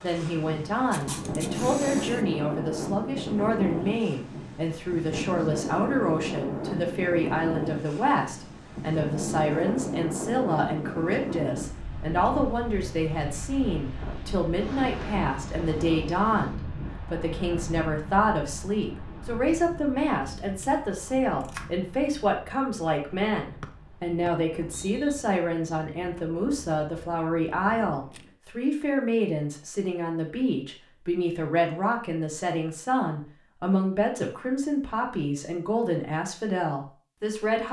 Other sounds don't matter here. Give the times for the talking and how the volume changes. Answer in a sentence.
The talking can be heard from 0.0 to 37.6 s, at a steady volume.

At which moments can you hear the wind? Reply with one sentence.
You can hear the wind from 0.0 to 28.4 s.